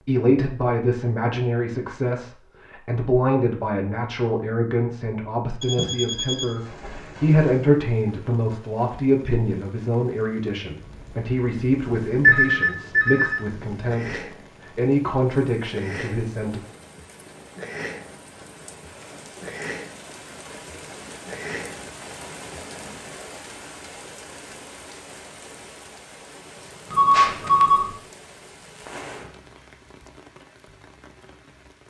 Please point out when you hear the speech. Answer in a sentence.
You can hear the speech from 0.0 to 16.6 s.